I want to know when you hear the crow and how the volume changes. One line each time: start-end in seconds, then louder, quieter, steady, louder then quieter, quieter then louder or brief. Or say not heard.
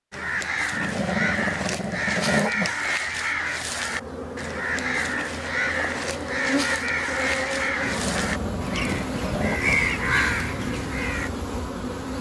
0.1-11.3 steady.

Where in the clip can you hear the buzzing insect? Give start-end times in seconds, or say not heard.
3.6-12.1.